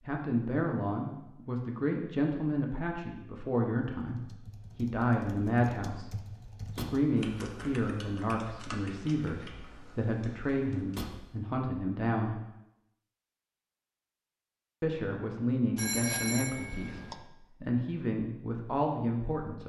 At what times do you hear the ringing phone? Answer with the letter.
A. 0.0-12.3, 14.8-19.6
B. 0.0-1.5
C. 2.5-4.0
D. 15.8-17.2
D.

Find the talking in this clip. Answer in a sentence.
The talking can be heard from 0.0 to 12.3 s and from 14.8 to 19.6 s.